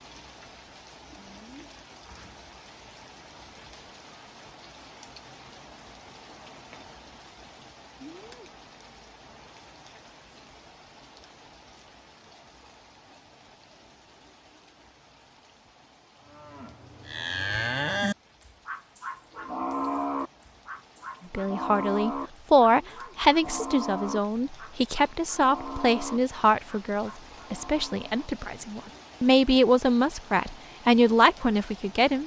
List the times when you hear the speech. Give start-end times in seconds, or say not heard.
21.3-32.2.